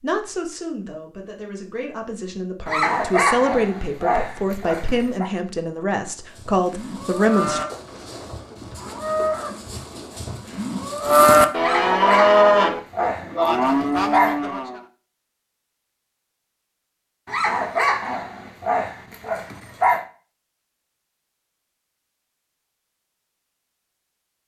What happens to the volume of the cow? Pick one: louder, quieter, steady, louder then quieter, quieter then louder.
louder then quieter.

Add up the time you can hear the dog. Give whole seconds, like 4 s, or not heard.
8 s.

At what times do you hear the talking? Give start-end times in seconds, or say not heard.
0.0-7.6.